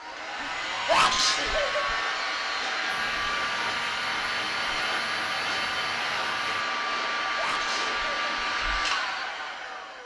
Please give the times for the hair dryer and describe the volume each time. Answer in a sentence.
You can hear the hair dryer from 0.0 to 10.0 s, at a steady volume.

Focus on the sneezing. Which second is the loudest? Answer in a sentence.
The loudest moment of the sneezing is at 1 second.